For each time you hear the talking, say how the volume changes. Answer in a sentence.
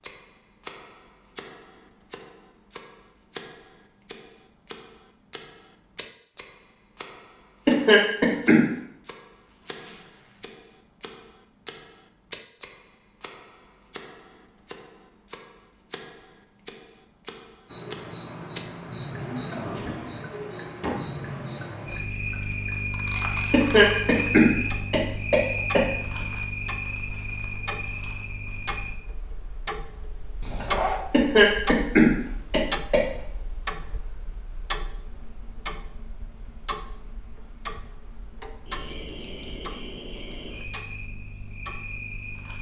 You can't hear the talking here.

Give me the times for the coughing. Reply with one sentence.
The coughing can be heard from 7.7 to 8.7 s, from 23.5 to 26.2 s and from 31.1 to 33.0 s.